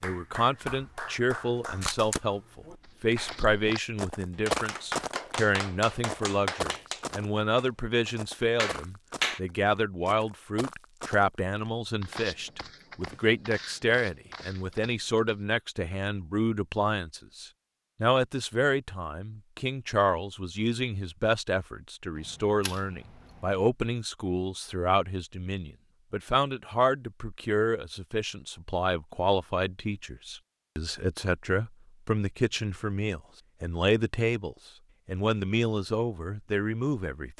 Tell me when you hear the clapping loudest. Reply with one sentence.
The volume of the clapping peaks at 9 seconds.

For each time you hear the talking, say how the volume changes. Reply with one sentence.
You can hear the talking from 0.0 to 37.3 s, at a steady volume.